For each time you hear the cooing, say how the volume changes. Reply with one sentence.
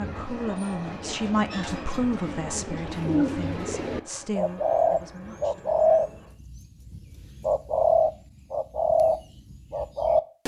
You can hear the cooing from 0.0 to 10.4 s, getting louder.